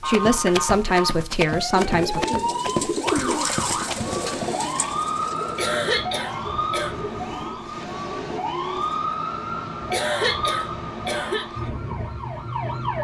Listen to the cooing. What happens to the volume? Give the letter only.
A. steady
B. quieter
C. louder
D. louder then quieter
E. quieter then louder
B.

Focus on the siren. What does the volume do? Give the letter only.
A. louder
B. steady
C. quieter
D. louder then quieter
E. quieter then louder
B.